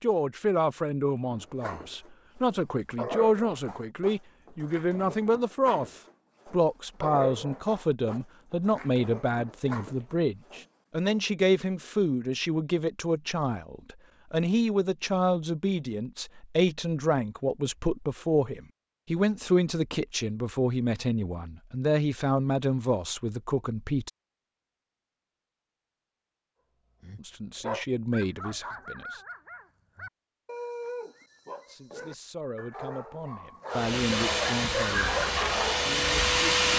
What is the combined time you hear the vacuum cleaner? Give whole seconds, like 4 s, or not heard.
3 s.